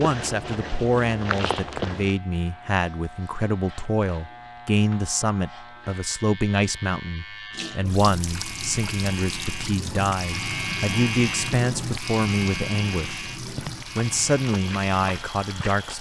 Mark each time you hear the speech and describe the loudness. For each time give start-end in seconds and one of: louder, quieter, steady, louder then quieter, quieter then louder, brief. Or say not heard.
0.0-13.2 steady
13.9-15.9 brief.